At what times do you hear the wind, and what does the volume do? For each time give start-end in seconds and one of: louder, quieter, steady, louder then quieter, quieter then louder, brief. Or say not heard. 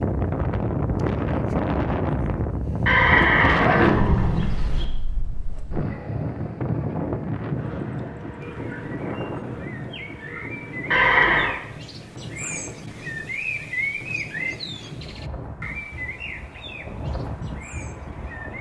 0.0-18.5 quieter.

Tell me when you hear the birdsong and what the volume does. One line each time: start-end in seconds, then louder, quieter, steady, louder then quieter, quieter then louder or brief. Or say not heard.
8.4-18.5 louder then quieter.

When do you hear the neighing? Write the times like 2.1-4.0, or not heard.
2.9-4.8, 10.9-11.6.